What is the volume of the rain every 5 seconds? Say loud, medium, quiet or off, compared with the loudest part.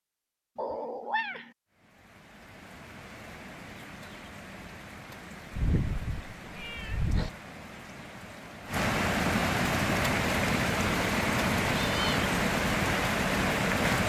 quiet, medium, loud.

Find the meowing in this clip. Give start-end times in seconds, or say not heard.
0.6-1.5, 5.5-7.3, 11.8-12.2.